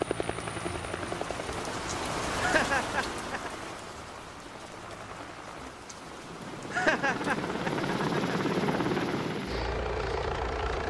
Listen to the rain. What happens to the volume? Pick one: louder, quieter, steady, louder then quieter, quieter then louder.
louder then quieter.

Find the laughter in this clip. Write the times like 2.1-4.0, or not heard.
2.4-3.5, 6.7-9.1.